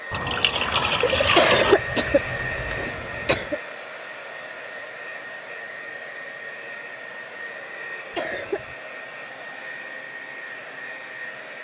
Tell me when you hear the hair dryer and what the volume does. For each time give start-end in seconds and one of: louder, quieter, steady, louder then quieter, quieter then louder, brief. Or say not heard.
0.0-11.5 quieter.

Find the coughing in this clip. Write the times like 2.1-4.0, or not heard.
1.4-3.6, 8.2-8.8.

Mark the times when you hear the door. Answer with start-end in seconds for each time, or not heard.
not heard.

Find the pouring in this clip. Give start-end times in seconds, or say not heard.
0.1-1.8.